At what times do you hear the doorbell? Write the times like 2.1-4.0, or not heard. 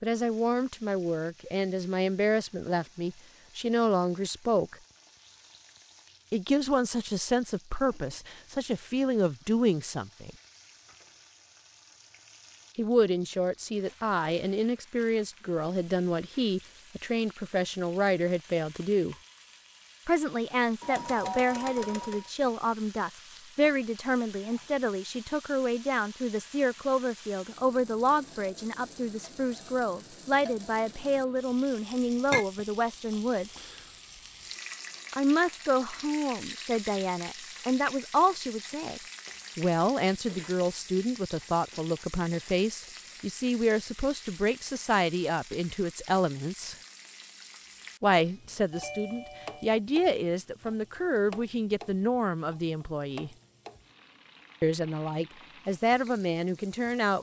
20.8-22.3, 48.7-49.8.